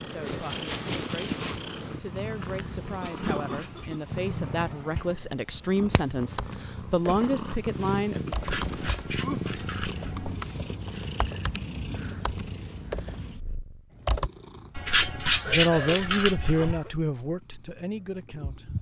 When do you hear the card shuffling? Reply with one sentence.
You can hear the card shuffling from 3.0 to 3.9 s, from 8.3 to 10.3 s and from 14.8 to 16.8 s.